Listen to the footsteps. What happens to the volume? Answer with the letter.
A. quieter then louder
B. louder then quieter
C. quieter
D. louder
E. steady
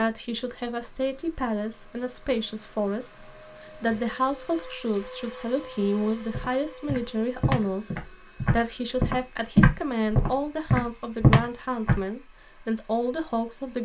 D.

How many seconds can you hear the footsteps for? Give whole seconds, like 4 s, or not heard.
6 s.